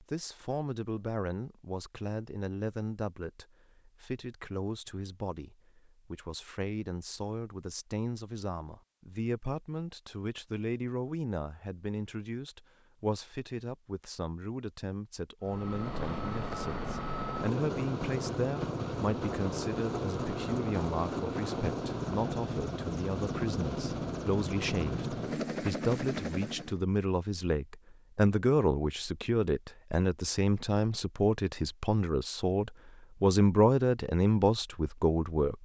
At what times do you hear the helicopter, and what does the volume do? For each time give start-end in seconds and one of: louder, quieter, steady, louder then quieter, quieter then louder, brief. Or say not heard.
15.4-26.8 steady.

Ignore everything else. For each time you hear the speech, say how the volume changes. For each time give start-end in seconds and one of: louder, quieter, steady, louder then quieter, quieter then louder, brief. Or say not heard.
0.0-35.6 louder.